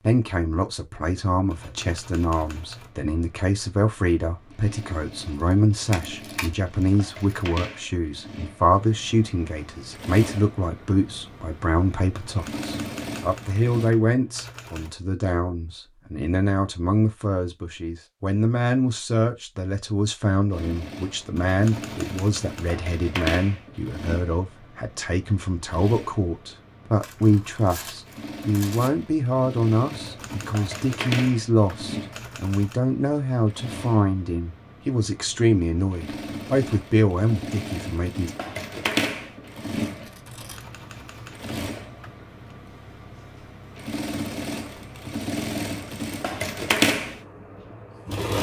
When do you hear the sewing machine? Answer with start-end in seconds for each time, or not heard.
2.5-13.9, 20.5-48.3.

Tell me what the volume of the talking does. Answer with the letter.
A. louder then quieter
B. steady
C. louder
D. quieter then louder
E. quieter
B.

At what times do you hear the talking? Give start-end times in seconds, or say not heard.
0.0-38.3.